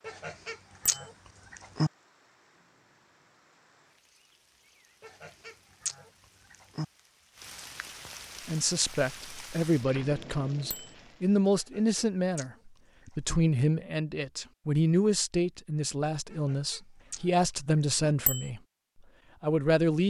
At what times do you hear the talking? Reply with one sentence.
You can hear the talking from 8.4 to 18.6 s and from 19.4 to 20.0 s.